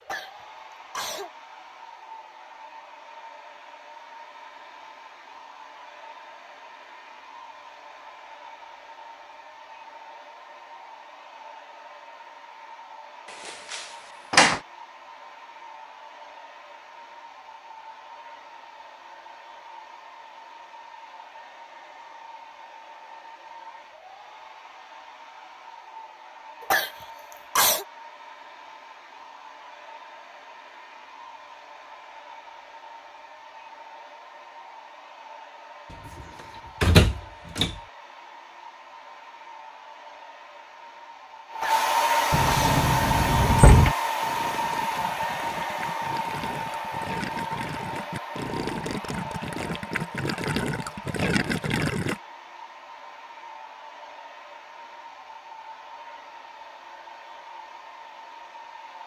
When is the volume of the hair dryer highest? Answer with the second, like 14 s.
42 s.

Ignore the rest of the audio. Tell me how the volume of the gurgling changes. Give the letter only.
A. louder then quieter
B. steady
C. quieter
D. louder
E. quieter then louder
D.